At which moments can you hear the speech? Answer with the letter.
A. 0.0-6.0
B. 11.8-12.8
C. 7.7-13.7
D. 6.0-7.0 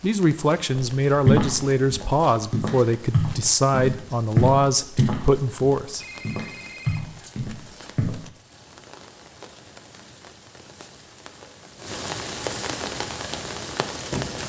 A.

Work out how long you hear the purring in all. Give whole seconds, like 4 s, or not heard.
not heard.